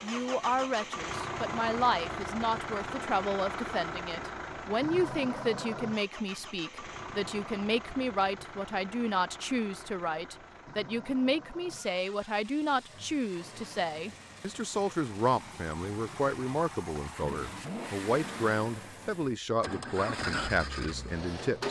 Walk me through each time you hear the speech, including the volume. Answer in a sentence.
The speech can be heard from 0.0 to 21.6 s, at a steady volume.